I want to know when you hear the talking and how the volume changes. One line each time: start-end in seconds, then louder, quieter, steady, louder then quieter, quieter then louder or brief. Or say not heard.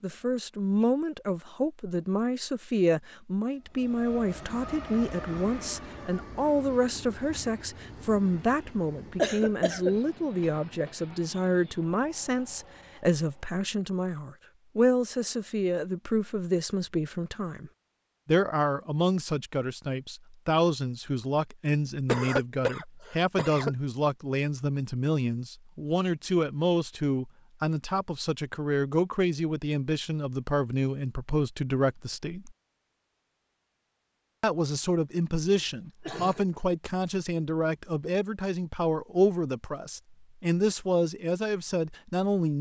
0.0-32.5 steady
34.4-42.5 steady.